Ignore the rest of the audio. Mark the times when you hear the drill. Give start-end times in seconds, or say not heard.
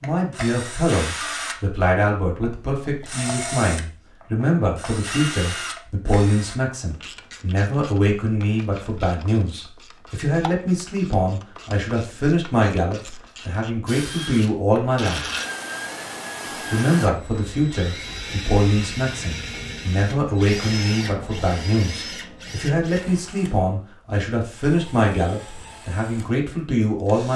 0.0-6.5, 13.8-27.3.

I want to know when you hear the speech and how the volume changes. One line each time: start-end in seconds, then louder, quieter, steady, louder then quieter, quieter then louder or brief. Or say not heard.
0.0-15.2 steady
16.7-27.3 steady.